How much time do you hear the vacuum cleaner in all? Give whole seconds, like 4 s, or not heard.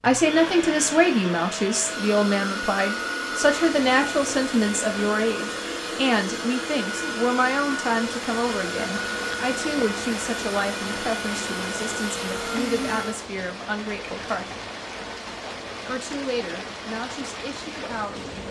13 s.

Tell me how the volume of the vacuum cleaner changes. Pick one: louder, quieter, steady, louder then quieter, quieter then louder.
steady.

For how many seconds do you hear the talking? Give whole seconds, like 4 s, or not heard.
17 s.